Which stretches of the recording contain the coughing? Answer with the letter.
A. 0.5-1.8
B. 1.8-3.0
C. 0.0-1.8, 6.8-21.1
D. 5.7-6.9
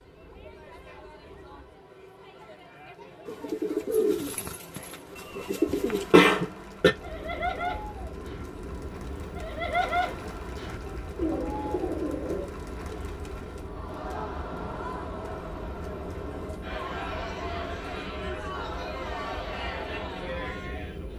D.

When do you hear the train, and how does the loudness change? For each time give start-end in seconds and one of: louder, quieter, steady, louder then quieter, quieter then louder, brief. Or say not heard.
0.0-1.8 brief
6.8-21.1 steady.